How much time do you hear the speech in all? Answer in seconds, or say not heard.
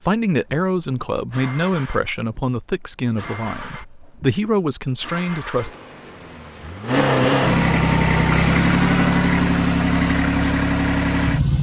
6 s.